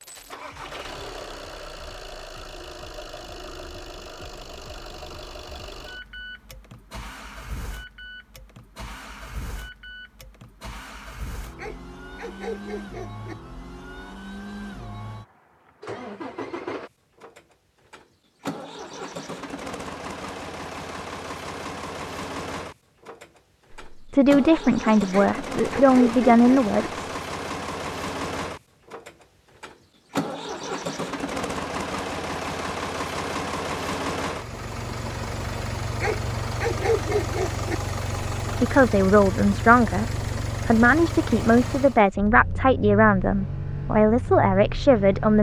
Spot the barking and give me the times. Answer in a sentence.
The barking can be heard from 11.6 to 13.3 s, from 25.1 to 26.8 s and from 36.0 to 37.8 s.